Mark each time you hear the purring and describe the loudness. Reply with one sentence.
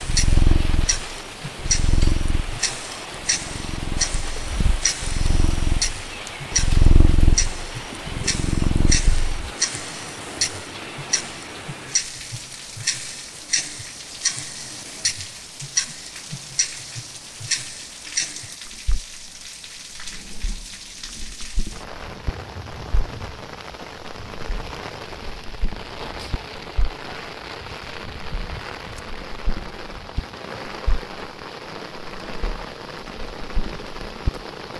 The purring can be heard from 0.0 to 9.4 s, getting quieter then louder.